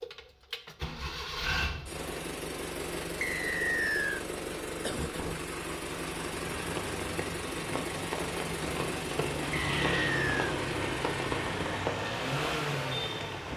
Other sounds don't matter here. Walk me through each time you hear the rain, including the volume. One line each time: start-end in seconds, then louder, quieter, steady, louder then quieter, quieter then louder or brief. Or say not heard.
5.7-13.5 louder.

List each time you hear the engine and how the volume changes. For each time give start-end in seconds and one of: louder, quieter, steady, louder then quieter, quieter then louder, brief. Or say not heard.
0.0-13.5 steady.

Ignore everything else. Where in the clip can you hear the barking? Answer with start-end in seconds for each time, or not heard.
not heard.